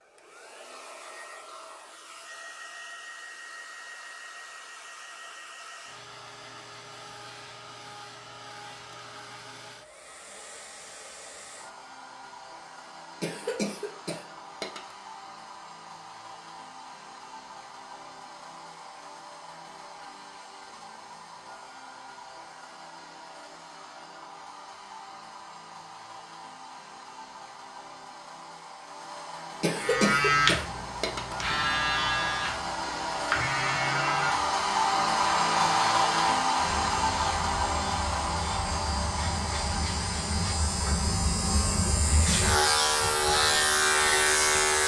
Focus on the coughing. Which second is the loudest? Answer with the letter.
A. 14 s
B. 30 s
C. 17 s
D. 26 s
B.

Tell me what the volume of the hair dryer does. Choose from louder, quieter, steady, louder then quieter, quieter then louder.
louder.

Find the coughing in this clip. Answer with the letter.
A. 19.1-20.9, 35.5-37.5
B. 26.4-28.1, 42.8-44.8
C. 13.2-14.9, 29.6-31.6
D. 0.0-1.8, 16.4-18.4
C.